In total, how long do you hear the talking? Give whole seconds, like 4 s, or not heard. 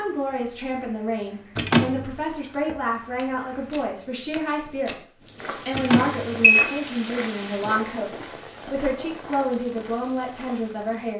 11 s.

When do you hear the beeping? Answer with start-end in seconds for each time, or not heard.
1.6-2.0, 5.7-6.7.